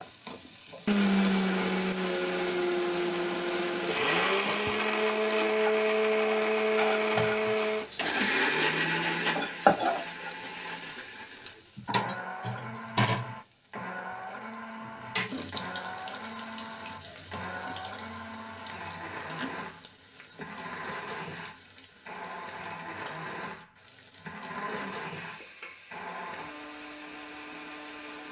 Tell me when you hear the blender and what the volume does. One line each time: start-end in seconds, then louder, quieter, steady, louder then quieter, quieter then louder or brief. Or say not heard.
0.0-28.2 quieter.